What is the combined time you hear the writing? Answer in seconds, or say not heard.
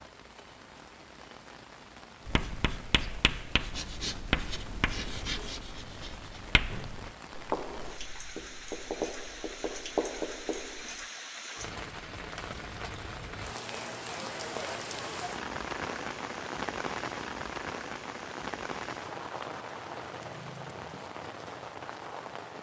9 s.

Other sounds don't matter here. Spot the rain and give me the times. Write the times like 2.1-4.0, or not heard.
0.0-22.5.